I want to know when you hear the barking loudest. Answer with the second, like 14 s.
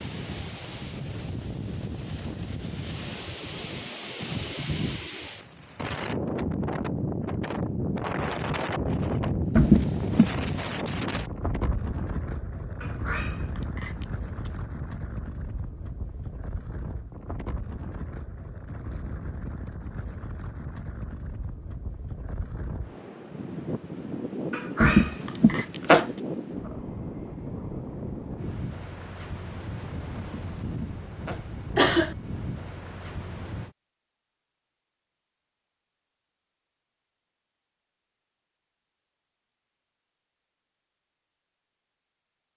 25 s.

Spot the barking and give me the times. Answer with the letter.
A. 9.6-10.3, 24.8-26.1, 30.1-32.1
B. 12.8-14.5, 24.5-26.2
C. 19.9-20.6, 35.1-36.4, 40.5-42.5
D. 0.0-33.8
B.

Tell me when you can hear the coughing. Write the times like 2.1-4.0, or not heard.
9.6-10.3, 24.8-26.1, 30.1-32.1.